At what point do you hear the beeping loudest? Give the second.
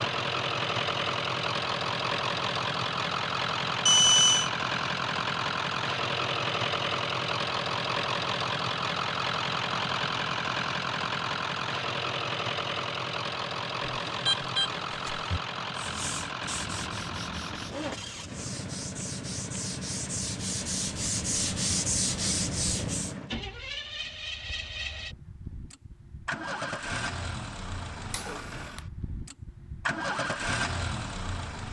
4 s.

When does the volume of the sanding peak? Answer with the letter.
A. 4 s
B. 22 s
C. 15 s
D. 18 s
B.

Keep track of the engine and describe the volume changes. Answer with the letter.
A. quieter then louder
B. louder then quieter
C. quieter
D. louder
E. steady
C.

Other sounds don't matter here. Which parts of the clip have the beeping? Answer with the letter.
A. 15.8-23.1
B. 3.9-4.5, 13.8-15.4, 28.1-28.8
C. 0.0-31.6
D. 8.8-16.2
B.